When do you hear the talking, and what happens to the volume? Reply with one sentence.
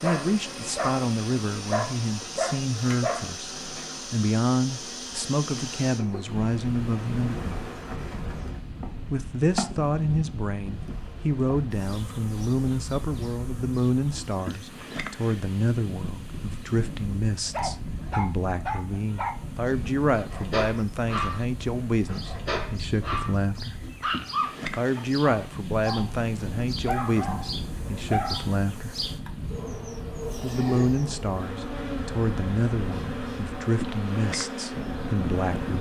You can hear the talking from 0.0 to 7.5 s, at a steady volume; from 9.1 to 23.8 s, at a steady volume; from 24.8 to 28.9 s, getting quieter then louder; and from 30.4 to 35.7 s, getting quieter.